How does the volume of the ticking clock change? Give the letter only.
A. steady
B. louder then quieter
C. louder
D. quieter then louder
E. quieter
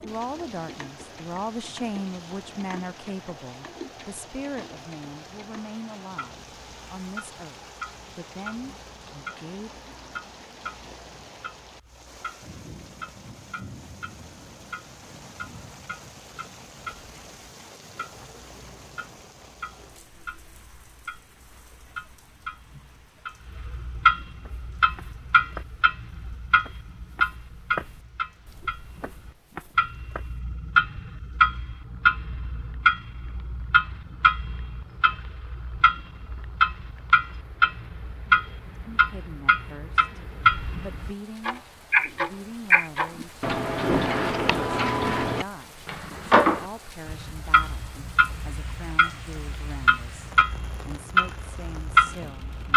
C.